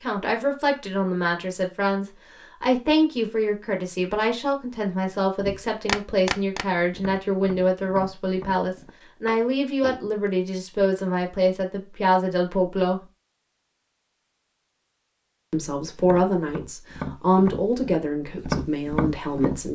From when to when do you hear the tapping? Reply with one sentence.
You can hear the tapping from 5.4 to 10.3 s and from 15.9 to 19.7 s.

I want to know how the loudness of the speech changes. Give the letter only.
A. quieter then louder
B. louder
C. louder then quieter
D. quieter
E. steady
E.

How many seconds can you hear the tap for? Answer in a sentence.
You can't hear the tap here.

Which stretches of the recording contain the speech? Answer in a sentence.
You can hear the speech from 0.0 to 13.0 s and from 15.5 to 19.7 s.